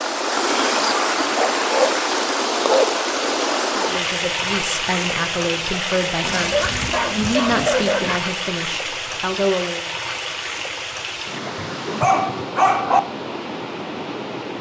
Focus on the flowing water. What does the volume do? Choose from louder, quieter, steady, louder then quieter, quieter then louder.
quieter.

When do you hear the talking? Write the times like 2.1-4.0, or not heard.
3.8-9.9.